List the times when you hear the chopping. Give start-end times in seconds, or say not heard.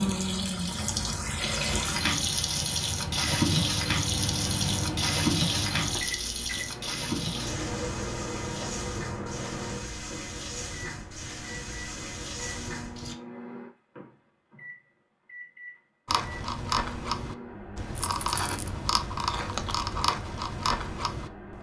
not heard.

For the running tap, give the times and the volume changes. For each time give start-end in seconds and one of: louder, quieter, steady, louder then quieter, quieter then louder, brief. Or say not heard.
0.0-13.2 quieter.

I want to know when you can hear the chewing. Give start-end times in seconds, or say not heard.
16.1-21.5.